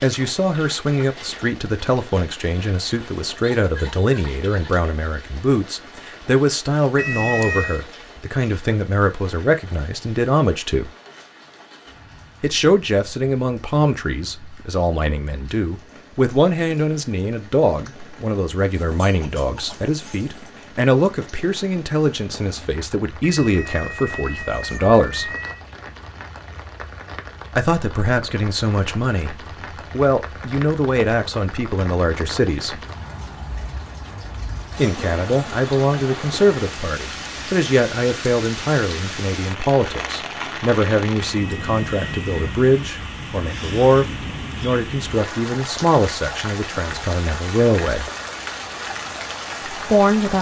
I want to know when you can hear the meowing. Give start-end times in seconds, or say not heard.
7.0-7.8, 23.2-25.6, 41.4-42.5.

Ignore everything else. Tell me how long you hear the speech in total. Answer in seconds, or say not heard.
43 s.